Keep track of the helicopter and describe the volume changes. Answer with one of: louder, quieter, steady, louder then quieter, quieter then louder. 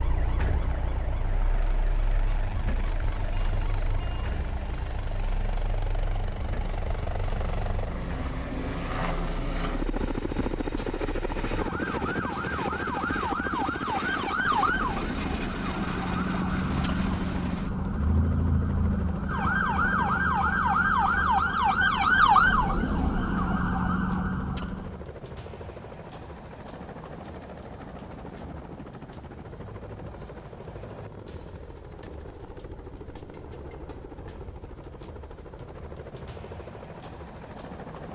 louder then quieter.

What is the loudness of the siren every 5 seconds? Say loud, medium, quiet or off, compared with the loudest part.
quiet, quiet, medium, medium, loud, off, off, off.